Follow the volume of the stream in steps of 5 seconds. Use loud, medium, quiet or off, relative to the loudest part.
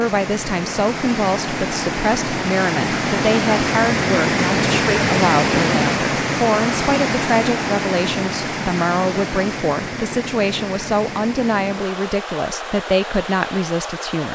loud, loud, medium.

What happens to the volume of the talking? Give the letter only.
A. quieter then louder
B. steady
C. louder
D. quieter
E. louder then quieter
B.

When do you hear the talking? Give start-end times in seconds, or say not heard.
0.0-14.2.